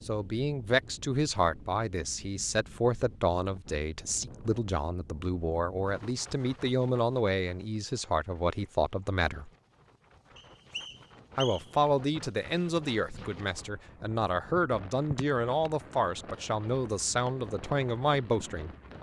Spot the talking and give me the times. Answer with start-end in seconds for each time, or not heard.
0.1-9.5, 11.3-18.7.